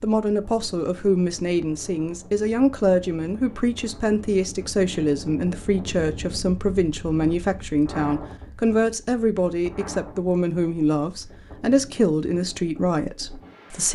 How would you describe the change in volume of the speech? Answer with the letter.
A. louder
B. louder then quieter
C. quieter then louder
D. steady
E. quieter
D.